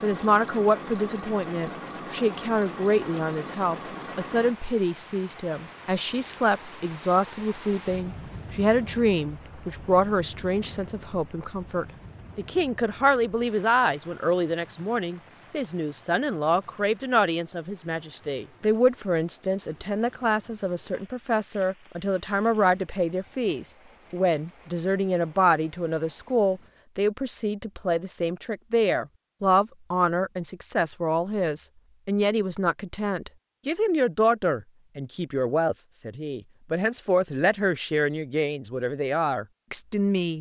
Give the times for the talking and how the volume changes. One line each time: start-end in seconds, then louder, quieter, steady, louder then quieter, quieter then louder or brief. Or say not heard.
0.0-40.3 steady.